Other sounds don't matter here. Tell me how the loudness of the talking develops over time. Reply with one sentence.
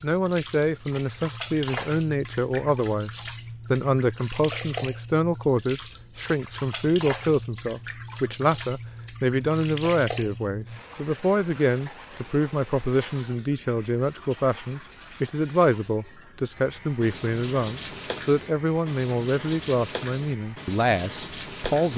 The volume of the talking stays about the same.